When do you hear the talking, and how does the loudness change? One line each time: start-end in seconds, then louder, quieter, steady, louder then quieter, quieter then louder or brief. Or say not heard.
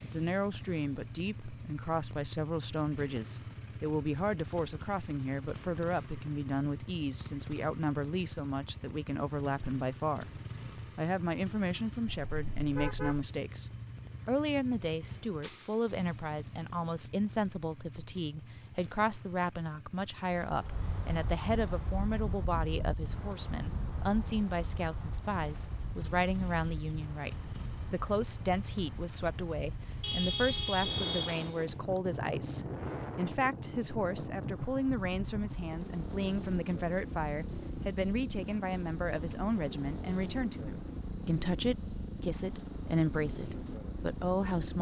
0.0-10.3 steady
10.9-44.7 steady.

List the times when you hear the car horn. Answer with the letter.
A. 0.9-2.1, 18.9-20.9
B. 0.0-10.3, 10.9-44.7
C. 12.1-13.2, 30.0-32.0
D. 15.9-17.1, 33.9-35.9
C.